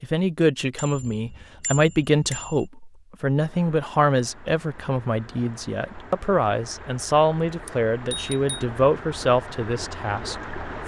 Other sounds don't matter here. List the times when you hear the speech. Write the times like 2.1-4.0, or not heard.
0.0-10.8.